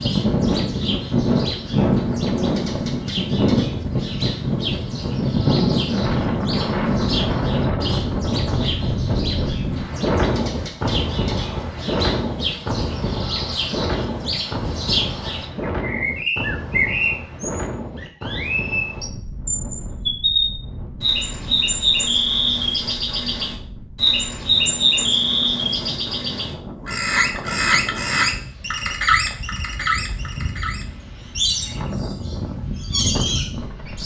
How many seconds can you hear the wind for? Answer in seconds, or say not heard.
34 s.